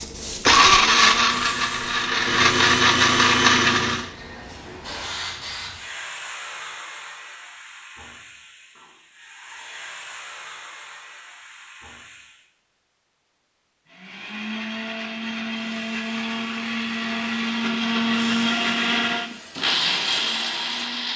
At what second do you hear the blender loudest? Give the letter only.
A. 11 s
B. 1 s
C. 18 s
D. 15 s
B.